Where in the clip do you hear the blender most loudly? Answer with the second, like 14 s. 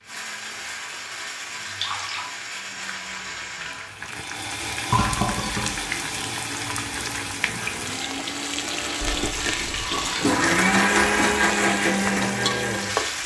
11 s.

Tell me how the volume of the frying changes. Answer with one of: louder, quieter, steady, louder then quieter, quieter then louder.
louder.